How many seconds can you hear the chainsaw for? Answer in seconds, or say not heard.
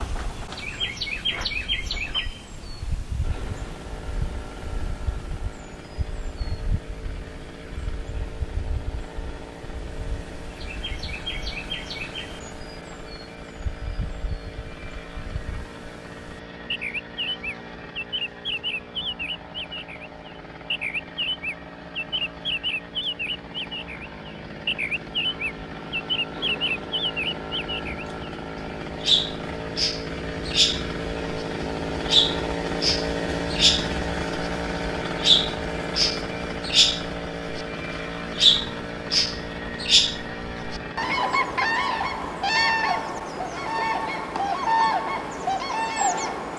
43 s.